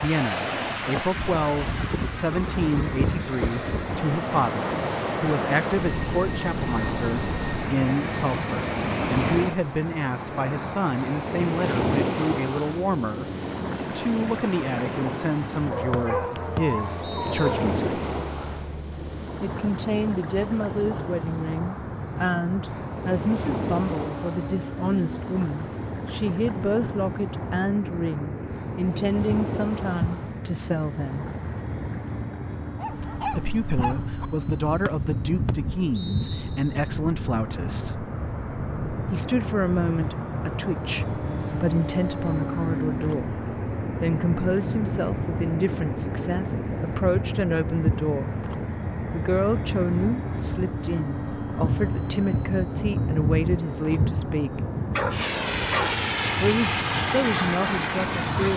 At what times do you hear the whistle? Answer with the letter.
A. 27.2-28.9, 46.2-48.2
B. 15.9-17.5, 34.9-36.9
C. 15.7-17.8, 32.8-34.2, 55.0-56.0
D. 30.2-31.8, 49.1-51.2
B.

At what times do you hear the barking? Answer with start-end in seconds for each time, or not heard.
15.7-17.8, 32.8-34.2, 55.0-56.0.